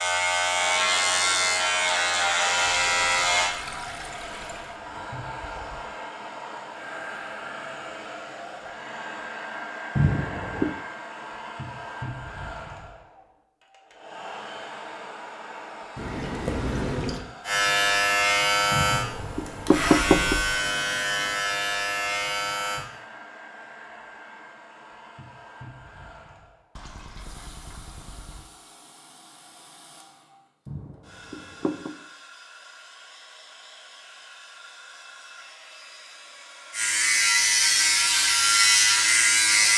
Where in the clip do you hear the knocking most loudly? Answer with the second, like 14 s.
20 s.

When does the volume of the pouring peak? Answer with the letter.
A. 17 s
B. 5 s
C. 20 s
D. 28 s
A.